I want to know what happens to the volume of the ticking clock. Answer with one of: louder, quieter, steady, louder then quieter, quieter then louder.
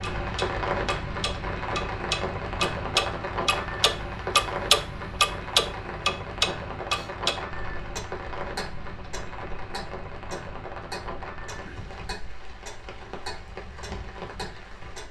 louder then quieter.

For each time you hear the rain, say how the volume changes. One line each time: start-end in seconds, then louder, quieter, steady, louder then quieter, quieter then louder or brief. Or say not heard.
0.0-15.0 quieter.